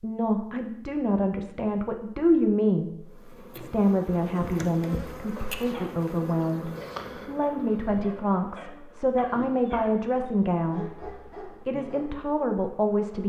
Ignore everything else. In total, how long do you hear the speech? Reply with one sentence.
You can hear the speech for 13 seconds altogether.